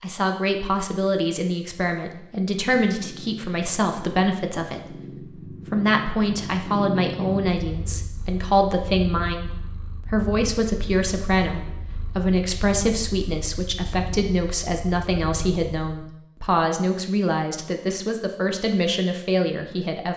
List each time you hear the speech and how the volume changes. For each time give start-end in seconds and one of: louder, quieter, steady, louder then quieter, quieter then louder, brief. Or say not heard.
0.0-20.1 steady.